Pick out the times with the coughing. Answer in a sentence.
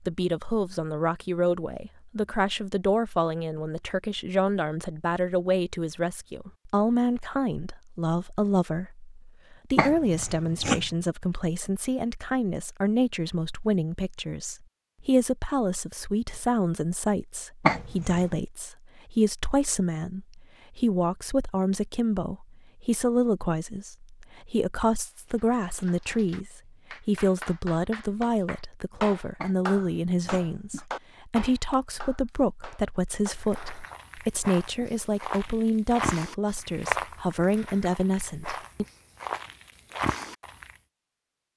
You can hear the coughing from 9.8 to 10.8 s, from 17.6 to 18.4 s and from 29.4 to 30.9 s.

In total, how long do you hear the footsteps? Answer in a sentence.
The footsteps can be heard for 7 seconds in total.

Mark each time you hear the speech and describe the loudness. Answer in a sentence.
The speech can be heard from 0.0 to 38.9 s, at a steady volume.